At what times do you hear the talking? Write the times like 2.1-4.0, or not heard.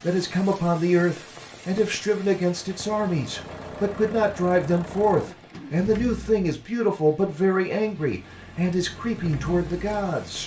0.0-10.4.